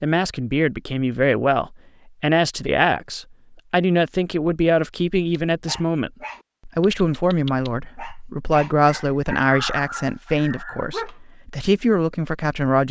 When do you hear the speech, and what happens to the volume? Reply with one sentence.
You can hear the speech from 0.0 to 12.8 s, at a steady volume.